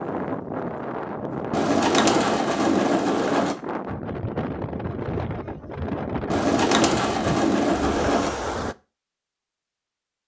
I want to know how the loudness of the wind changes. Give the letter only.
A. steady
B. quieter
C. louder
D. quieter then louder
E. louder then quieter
A.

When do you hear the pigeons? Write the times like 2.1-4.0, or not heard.
1.5-3.5, 6.3-8.3.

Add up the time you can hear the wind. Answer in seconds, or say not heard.
9 s.